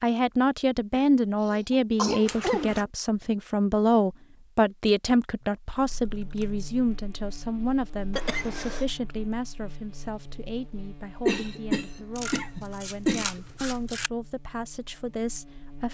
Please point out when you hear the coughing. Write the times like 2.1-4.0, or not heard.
0.9-2.8, 8.1-8.8, 11.2-13.4.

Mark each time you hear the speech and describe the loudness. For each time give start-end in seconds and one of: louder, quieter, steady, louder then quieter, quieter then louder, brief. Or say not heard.
0.0-15.8 quieter.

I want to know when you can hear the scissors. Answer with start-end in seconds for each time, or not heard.
2.2-2.9, 6.2-7.0, 12.1-14.1.